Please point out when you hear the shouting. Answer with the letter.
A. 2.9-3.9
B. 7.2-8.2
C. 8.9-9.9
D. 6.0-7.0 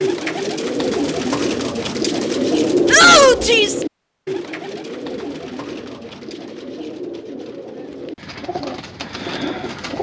A.